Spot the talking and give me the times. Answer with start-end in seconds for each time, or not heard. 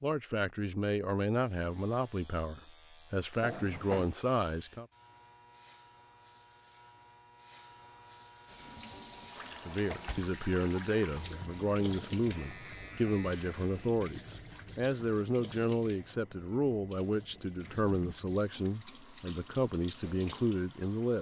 0.0-4.8, 9.7-21.1.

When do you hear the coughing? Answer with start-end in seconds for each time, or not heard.
not heard.